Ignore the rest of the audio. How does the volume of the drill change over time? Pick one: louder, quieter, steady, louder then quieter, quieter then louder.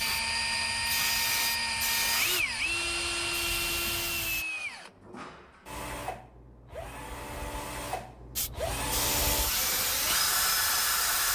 quieter then louder.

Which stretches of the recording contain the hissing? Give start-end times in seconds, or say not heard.
0.0-4.5, 8.3-11.3.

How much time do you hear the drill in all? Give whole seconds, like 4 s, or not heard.
11 s.